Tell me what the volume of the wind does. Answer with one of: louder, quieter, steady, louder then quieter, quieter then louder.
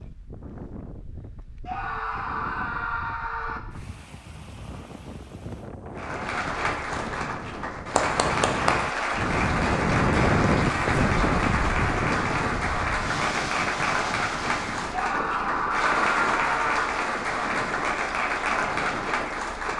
louder then quieter.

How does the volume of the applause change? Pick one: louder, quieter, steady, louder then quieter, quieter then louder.
steady.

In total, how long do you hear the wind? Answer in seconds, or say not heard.
20 s.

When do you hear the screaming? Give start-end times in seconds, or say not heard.
1.6-3.6, 14.9-16.9.